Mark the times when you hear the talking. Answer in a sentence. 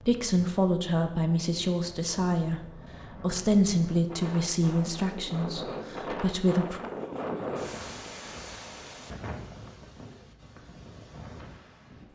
You can hear the talking from 0.1 to 6.8 s.